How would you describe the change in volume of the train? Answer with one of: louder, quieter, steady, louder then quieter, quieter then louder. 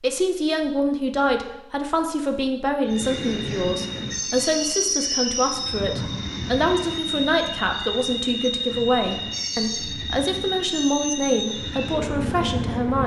steady.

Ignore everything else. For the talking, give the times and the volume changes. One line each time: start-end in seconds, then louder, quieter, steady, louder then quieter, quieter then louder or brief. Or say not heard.
0.0-13.0 steady.